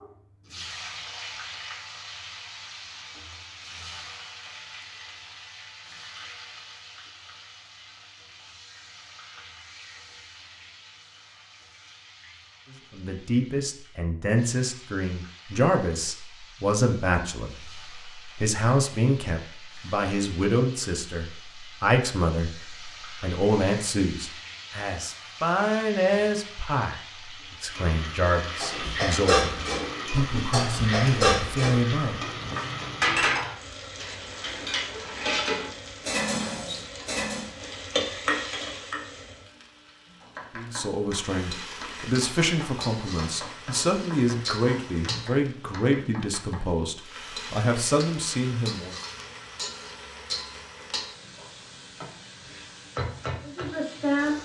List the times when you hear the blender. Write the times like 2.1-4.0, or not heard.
not heard.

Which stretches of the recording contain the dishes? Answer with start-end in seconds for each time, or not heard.
28.6-37.5.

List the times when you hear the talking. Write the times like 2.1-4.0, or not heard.
12.7-32.2, 40.5-49.0.